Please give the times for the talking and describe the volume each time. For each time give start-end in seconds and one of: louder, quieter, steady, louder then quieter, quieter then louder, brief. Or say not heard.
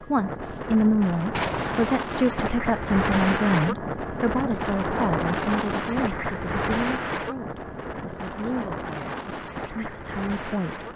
0.1-10.9 quieter.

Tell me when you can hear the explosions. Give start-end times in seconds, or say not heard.
1.3-1.9.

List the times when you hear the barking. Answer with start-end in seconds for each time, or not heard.
not heard.